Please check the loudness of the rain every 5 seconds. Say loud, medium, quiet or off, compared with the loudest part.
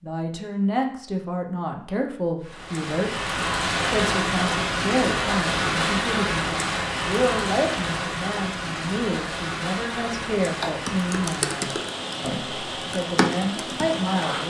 loud, loud, medium.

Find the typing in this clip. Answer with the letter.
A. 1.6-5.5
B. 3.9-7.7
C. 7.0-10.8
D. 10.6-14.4
D.